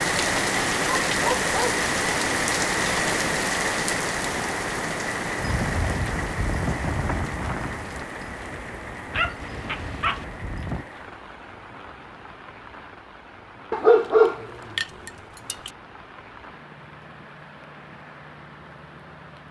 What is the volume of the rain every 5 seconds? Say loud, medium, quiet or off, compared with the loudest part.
loud, medium, quiet, quiet.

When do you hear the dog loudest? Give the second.
14 s.